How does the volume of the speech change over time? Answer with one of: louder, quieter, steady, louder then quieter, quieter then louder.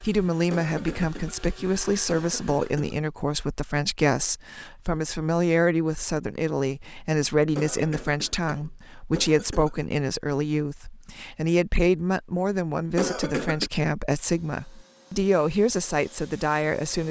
steady.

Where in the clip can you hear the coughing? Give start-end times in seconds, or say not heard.
0.5-3.0, 7.5-9.8, 12.9-13.7.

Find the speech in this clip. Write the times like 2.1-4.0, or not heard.
0.0-17.0.